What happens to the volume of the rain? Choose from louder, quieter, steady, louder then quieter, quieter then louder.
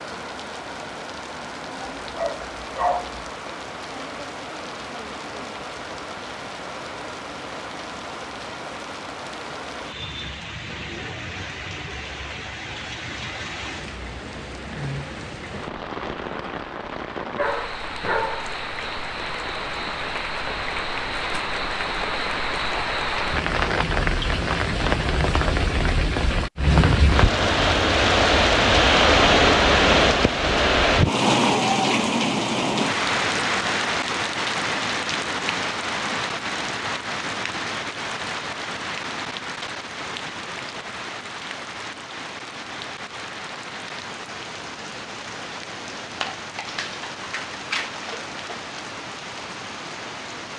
louder then quieter.